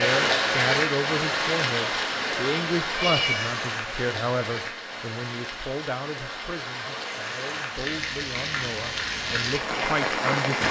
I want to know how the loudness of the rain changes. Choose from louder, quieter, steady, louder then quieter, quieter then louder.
quieter then louder.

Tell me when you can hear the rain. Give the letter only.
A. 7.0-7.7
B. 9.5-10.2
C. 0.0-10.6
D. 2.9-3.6
C.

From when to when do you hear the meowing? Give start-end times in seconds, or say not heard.
2.9-3.6.